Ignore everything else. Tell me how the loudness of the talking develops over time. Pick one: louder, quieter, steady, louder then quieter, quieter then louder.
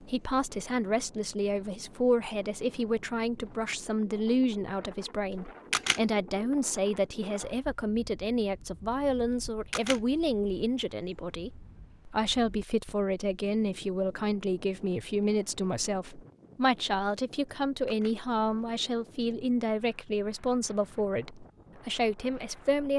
steady.